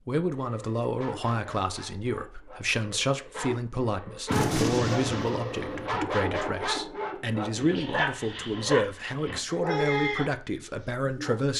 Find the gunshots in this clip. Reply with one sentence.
The gunshots can be heard from 4.2 to 5.9 s.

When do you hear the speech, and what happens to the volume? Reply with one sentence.
You can hear the speech from 0.1 to 11.5 s, at a steady volume.